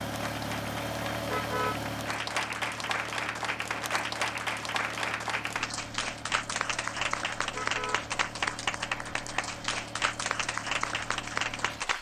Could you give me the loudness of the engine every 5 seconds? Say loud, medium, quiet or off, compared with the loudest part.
loud, medium, medium.